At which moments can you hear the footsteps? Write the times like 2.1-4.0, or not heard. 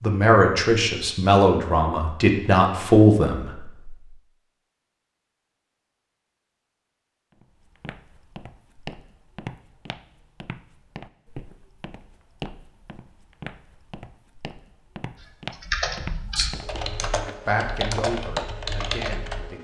7.4-18.6.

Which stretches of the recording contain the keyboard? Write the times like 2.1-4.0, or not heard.
15.2-19.5.